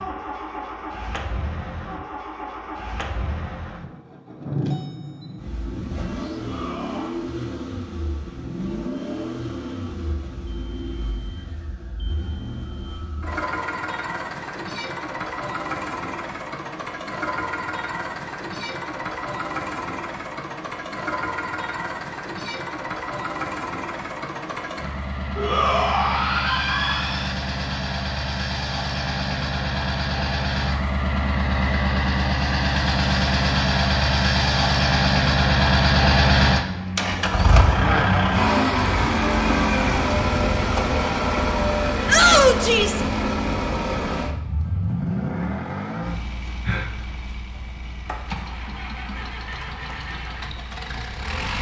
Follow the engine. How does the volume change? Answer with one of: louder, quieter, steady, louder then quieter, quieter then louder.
louder then quieter.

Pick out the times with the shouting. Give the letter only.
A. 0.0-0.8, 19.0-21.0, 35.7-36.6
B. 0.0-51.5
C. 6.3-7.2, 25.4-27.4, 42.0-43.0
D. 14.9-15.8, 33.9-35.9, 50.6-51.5
C.